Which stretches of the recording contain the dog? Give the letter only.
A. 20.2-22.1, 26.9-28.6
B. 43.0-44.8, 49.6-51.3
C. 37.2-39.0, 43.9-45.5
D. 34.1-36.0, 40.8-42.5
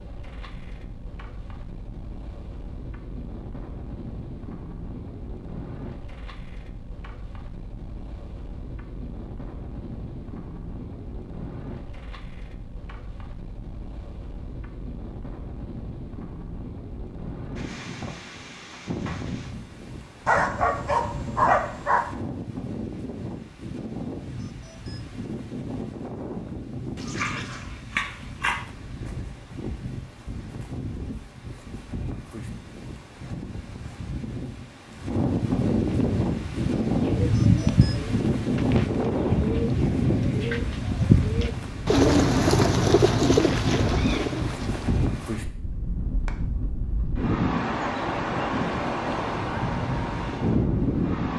A.